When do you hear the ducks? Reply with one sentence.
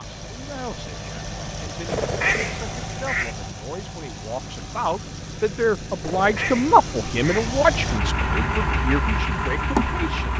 The ducks can be heard from 1.9 to 3.4 s and from 6.0 to 7.5 s.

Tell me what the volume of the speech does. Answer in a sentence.
The loudness of the speech goes up, then down.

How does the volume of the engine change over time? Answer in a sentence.
The loudness of the engine goes up.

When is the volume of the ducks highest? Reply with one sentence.
The loudest moment of the ducks is at 2 seconds.